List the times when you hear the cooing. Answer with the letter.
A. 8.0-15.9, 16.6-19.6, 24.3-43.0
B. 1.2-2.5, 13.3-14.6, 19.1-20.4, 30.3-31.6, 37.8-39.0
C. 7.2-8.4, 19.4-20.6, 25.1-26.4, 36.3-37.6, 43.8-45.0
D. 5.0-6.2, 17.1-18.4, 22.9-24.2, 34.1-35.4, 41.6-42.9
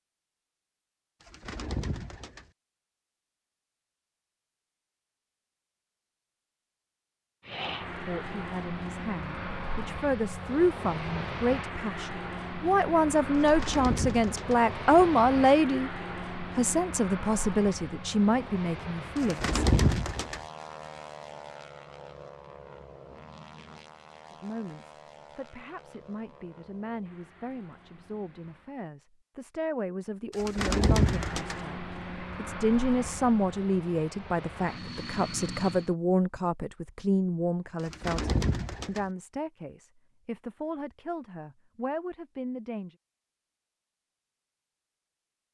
B.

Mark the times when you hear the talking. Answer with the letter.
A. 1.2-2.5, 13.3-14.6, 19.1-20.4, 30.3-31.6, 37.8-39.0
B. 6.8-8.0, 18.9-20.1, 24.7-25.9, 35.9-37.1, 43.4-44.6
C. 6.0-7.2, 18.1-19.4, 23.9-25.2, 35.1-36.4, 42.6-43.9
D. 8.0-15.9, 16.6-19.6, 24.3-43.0
D.